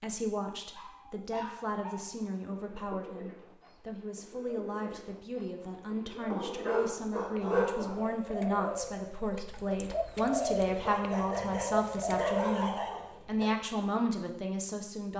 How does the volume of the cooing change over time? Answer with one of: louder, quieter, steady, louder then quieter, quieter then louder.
louder.